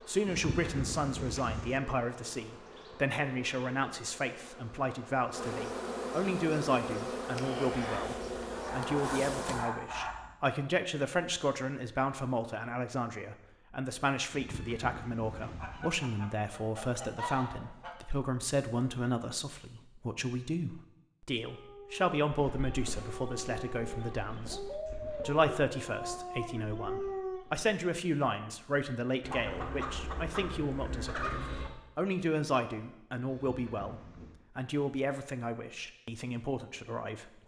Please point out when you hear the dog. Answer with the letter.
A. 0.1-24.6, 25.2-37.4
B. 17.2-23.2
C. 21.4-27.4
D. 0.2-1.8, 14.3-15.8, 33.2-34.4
C.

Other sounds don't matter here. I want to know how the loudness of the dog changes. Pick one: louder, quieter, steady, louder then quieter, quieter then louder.
louder.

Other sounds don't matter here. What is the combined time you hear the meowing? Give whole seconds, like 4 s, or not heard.
4 s.